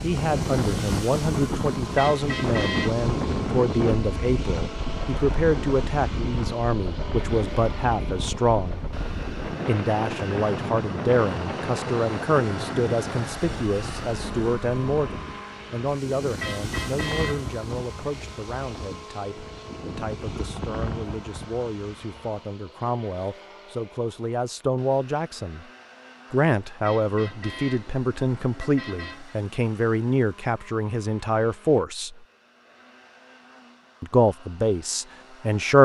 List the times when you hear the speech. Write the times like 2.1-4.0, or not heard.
0.0-8.8, 9.7-25.6, 26.3-32.2, 34.0-35.8.